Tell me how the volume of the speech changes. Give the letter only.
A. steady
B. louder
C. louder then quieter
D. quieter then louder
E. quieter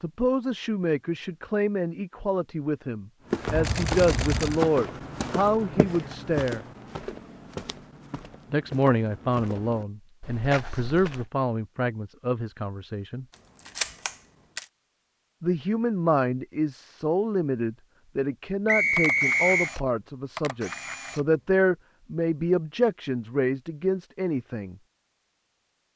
A.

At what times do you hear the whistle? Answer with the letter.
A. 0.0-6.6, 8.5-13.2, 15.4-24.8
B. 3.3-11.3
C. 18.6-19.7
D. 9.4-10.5
C.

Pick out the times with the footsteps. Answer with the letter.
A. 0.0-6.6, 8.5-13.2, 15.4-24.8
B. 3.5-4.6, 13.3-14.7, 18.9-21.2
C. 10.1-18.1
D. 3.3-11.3
D.